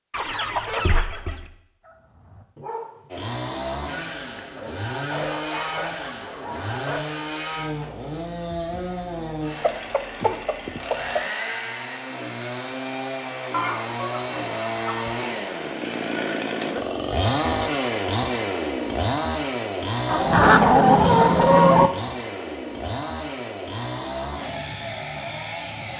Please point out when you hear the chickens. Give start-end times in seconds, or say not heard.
0.1-1.4, 9.6-11.2, 13.5-15.2, 20.1-21.9.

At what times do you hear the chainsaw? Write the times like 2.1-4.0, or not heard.
3.0-25.9.